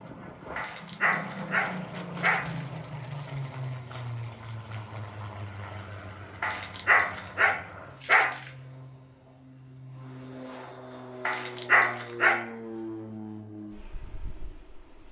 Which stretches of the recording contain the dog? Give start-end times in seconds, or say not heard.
0.6-2.6, 6.4-8.5, 11.2-12.5.